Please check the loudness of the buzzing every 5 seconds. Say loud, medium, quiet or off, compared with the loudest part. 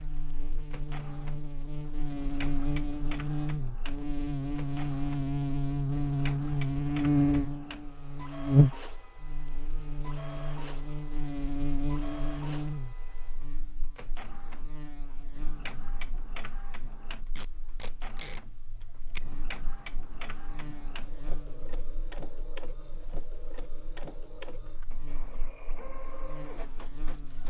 medium, loud, medium, quiet, quiet, quiet.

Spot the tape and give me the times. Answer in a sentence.
You can hear the tape from 17.4 to 19.3 s.